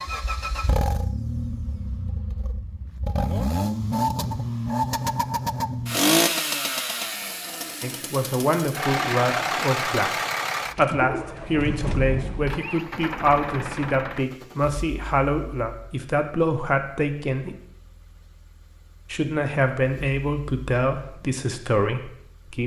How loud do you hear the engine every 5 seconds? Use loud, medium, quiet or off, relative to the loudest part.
loud, loud, medium, quiet, quiet.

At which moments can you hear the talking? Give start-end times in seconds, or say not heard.
7.8-10.1, 10.8-17.6, 19.1-22.6.